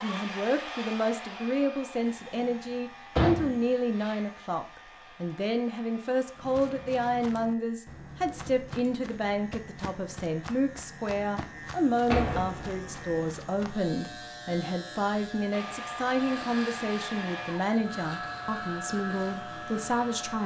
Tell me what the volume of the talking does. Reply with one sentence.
The volume of the talking stays about the same.